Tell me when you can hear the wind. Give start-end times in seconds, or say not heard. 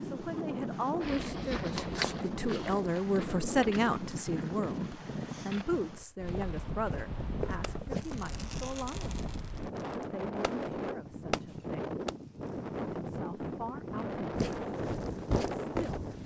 0.0-16.2.